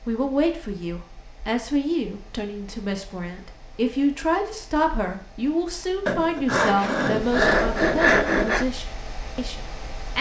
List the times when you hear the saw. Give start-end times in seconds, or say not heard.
6.0-8.7.